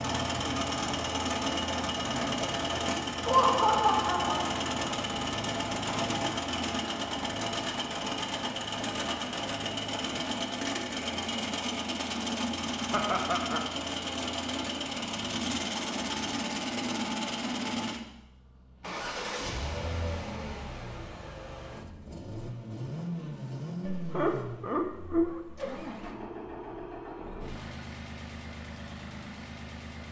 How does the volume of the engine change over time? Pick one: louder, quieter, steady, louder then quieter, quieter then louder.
quieter.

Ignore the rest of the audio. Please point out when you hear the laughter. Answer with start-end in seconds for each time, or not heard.
3.2-4.5, 12.9-13.7, 23.9-25.8.